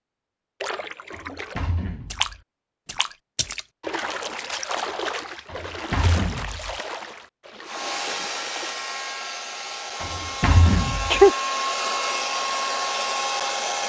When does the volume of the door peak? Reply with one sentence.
The volume of the door peaks at 11 seconds.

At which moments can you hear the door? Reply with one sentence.
You can hear the door from 1.1 to 2.4 s, from 5.5 to 6.8 s and from 10.0 to 11.2 s.